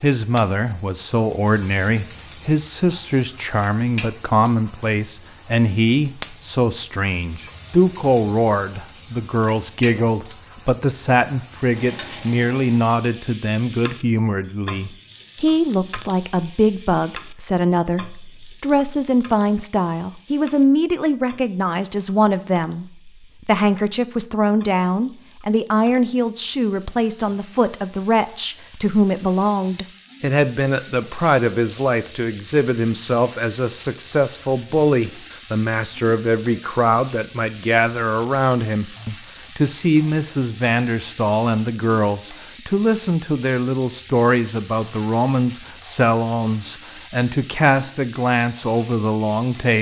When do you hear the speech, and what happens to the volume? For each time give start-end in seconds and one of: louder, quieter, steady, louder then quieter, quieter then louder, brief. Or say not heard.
0.0-49.7 steady.